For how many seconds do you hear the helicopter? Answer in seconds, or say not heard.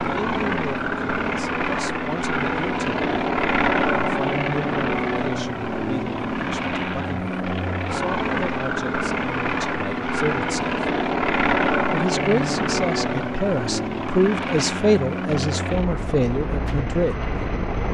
18 s.